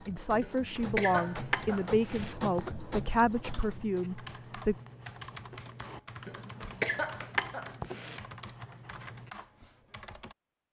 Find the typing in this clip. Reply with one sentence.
The typing can be heard from 3.5 to 10.3 s.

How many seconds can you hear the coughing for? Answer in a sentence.
You can hear the coughing for 4 seconds altogether.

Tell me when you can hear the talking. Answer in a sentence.
You can hear the talking from 0.1 to 4.8 s.